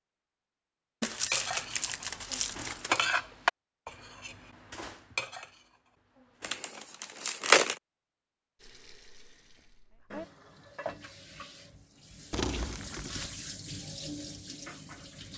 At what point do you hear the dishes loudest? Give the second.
3 s.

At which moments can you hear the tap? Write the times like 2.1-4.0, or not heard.
8.6-15.3.